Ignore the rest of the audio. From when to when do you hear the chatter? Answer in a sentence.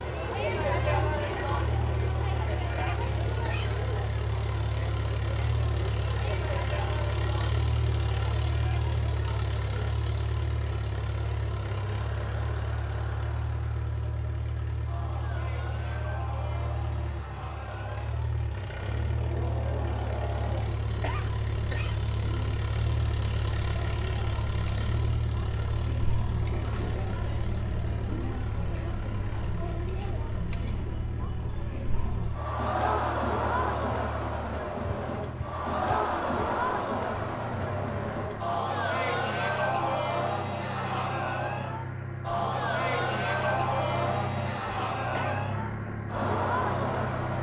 The chatter can be heard from 0.0 to 47.3 s.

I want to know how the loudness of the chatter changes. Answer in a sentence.
The volume of the chatter goes down, then up.